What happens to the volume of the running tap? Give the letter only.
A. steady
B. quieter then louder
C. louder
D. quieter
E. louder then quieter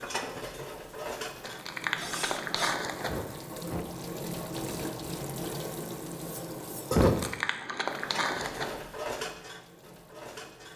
E.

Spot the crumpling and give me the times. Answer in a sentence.
You can hear the crumpling from 1.4 to 3.2 s and from 7.0 to 8.8 s.